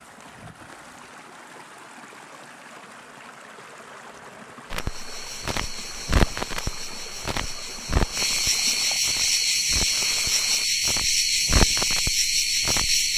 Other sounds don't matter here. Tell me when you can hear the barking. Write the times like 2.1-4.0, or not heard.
not heard.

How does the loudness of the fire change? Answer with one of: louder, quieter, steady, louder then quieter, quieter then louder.
quieter then louder.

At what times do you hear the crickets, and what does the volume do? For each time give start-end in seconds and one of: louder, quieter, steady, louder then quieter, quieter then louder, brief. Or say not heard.
4.7-13.1 louder.